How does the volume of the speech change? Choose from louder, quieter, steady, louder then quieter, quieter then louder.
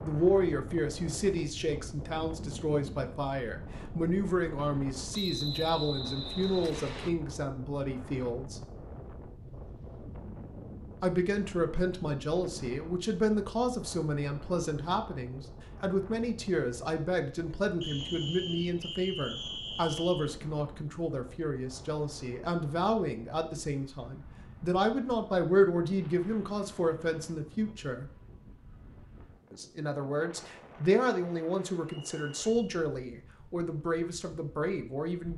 steady.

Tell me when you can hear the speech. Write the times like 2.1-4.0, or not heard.
0.0-8.6, 11.0-28.1, 29.5-35.3.